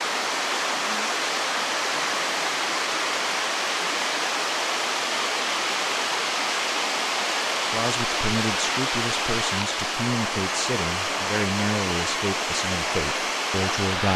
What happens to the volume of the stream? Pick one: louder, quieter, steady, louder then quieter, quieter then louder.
steady.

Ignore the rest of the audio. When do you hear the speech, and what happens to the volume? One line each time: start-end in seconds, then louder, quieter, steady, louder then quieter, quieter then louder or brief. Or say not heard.
7.7-14.1 steady.